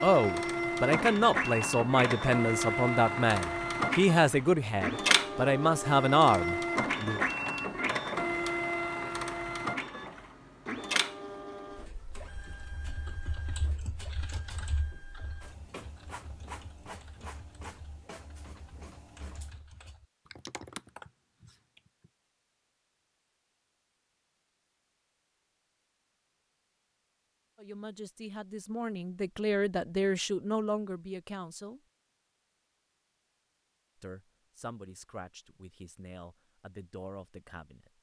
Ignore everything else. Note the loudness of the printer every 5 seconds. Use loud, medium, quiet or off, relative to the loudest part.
loud, loud, medium, quiet, off, off, off, off.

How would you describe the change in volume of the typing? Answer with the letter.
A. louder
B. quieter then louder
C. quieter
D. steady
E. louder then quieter
B.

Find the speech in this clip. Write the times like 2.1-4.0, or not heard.
0.0-7.2, 27.6-31.8, 34.0-37.9.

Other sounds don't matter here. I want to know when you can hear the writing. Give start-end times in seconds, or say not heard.
not heard.